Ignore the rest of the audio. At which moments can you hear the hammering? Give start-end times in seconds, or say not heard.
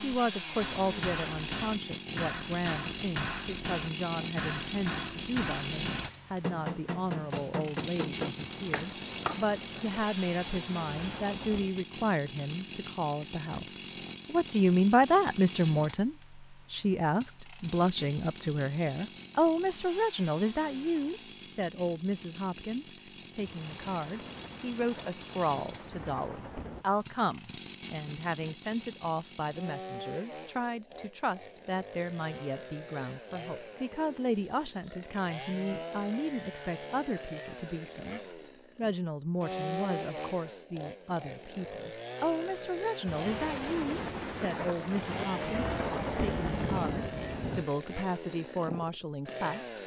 0.6-9.4.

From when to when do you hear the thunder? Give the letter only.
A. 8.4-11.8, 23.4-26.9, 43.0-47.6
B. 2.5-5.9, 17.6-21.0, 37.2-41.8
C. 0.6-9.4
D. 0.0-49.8
A.